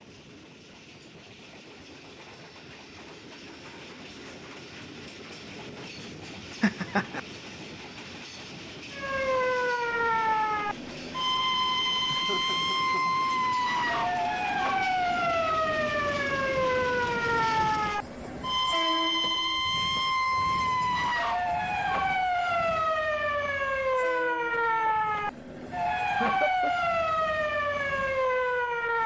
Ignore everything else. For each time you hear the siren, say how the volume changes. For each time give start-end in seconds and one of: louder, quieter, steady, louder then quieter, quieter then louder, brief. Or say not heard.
8.9-29.0 steady.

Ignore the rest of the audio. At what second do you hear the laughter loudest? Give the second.
7 s.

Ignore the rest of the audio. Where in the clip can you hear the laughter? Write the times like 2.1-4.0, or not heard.
6.6-7.2, 12.1-13.2, 26.2-26.7.